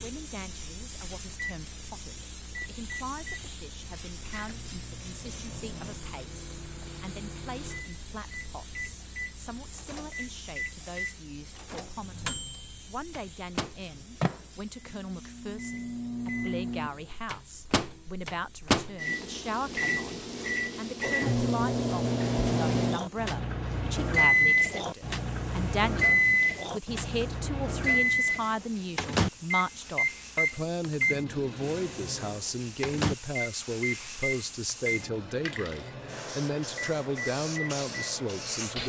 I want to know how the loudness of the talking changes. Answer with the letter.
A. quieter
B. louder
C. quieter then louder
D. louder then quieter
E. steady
B.